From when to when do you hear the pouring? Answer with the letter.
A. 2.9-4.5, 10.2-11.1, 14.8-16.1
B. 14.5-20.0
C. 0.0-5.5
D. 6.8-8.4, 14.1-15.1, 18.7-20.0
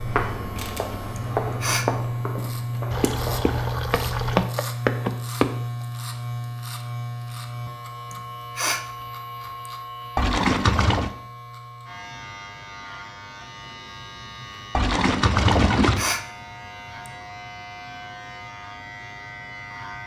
A.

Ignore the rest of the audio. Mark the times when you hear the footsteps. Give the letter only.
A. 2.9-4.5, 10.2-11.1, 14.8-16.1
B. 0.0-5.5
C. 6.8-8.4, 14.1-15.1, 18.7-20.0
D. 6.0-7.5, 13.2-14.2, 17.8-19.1
B.